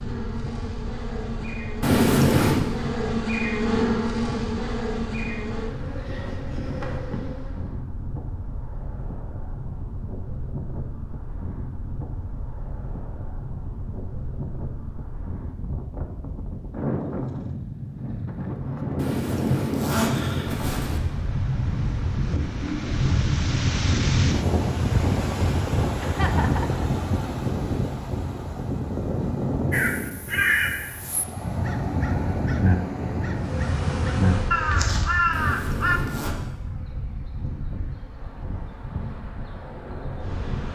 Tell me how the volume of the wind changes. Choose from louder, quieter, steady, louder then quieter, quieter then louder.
louder then quieter.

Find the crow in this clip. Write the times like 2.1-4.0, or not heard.
29.7-36.0.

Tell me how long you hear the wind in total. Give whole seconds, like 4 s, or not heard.
41 s.